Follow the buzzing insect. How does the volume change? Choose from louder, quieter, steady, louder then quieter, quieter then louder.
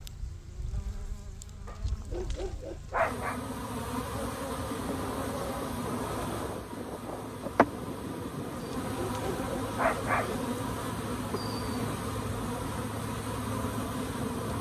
louder.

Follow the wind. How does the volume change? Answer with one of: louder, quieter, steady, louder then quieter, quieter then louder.
steady.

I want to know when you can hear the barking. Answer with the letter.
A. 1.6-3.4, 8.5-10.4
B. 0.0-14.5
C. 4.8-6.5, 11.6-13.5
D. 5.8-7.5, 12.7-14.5
A.